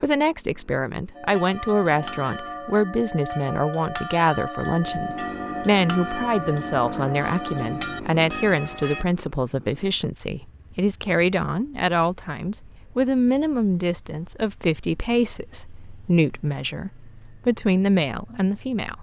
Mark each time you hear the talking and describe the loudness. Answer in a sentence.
You can hear the talking from 0.0 to 18.9 s, at a steady volume.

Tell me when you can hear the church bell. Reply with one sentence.
You can hear the church bell from 1.1 to 9.1 s.